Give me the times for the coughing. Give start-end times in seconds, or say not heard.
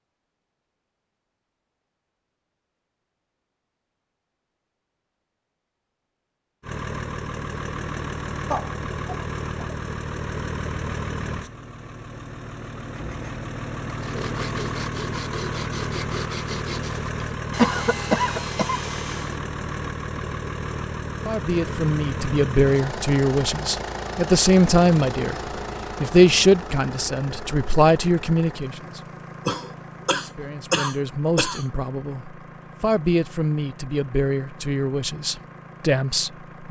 8.5-9.8, 17.6-18.8, 29.4-31.6.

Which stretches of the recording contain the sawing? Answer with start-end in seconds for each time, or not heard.
12.9-19.4.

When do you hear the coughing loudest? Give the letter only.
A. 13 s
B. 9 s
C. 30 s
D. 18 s
D.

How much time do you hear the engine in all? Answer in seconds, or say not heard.
30 s.